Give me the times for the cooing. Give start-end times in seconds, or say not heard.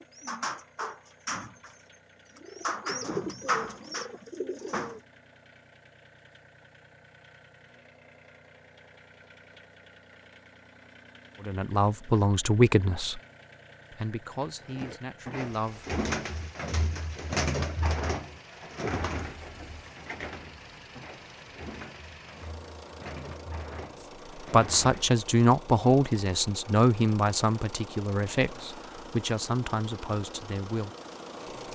0.0-5.0, 14.7-25.2.